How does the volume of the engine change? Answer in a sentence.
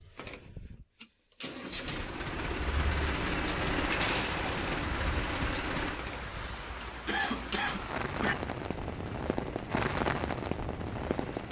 The loudness of the engine goes up, then down.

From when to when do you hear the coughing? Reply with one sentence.
You can hear the coughing from 6.3 to 8.3 s.